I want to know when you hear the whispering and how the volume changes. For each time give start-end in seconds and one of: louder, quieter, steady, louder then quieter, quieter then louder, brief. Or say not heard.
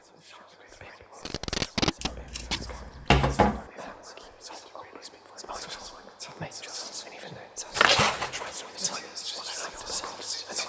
0.0-10.6 louder.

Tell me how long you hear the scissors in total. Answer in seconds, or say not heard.
2 s.